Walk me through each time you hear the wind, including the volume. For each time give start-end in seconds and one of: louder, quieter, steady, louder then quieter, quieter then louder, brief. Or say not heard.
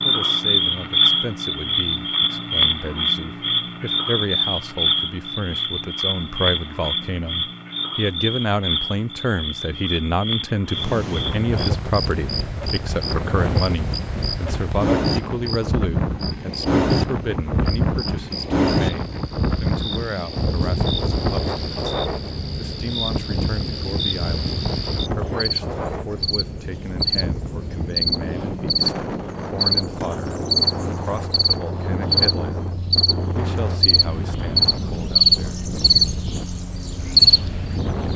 10.7-38.1 quieter.